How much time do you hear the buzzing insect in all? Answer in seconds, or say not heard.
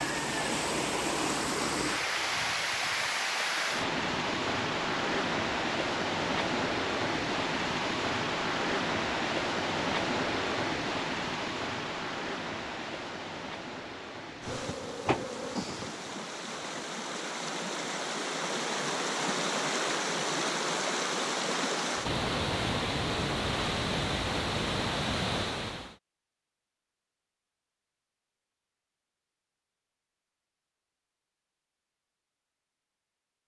2 s.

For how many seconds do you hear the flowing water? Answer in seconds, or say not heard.
26 s.